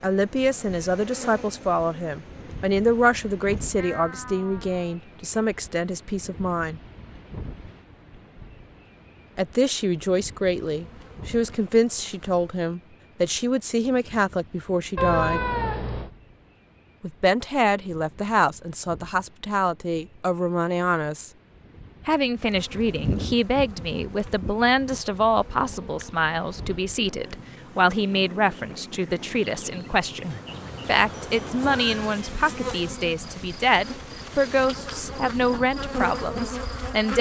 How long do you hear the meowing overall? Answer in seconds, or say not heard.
4 s.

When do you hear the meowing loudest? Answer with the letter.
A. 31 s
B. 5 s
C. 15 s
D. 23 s
C.